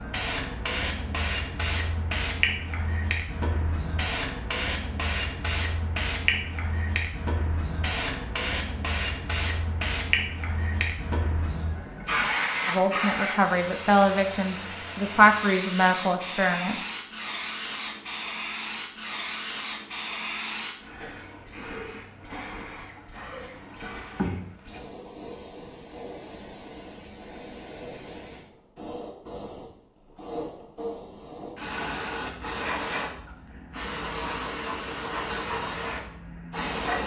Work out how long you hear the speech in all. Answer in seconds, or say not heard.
4 s.